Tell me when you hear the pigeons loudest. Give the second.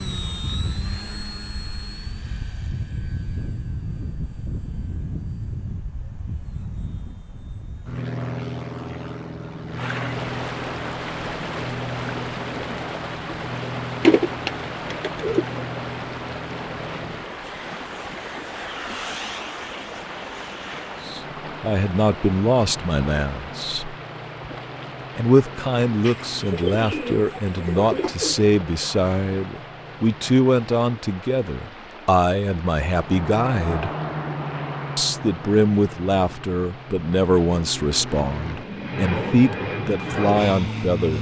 14 s.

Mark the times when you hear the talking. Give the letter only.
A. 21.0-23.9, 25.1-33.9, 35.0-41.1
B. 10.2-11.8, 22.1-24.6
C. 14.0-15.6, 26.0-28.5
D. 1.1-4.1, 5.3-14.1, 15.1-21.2
A.